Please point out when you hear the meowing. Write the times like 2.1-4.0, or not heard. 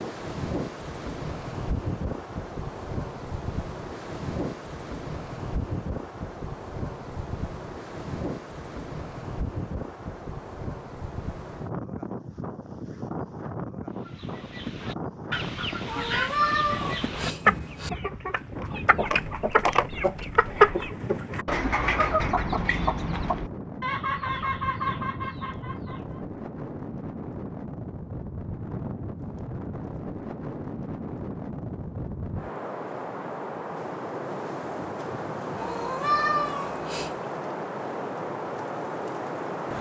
15.8-17.9, 35.5-37.1.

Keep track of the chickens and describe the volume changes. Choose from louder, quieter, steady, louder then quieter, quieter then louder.
louder then quieter.